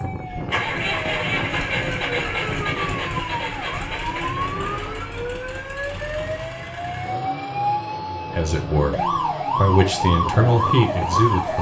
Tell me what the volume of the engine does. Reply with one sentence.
The volume of the engine goes down.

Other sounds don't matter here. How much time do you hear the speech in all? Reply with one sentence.
The speech can be heard for 3 seconds in total.